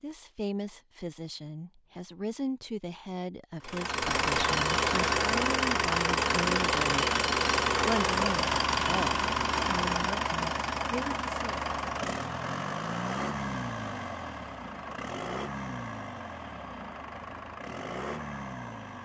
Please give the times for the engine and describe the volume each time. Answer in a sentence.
You can hear the engine from 3.6 to 19.0 s, getting quieter.